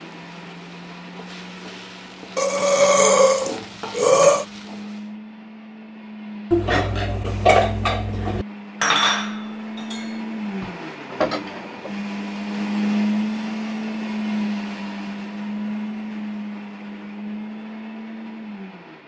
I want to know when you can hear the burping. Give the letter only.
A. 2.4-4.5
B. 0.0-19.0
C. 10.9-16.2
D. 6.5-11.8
A.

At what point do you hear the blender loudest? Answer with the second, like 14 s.
13 s.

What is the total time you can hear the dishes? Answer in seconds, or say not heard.
5 s.